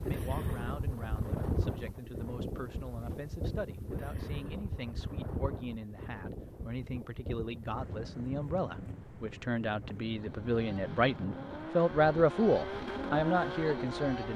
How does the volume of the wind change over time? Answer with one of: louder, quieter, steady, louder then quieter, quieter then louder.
quieter.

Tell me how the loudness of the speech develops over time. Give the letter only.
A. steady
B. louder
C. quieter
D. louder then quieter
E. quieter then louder
B.